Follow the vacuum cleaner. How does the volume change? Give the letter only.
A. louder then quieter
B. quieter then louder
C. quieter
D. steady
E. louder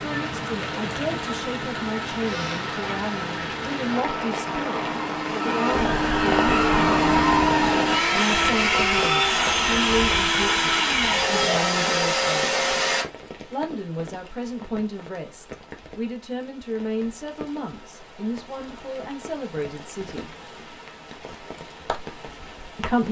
E.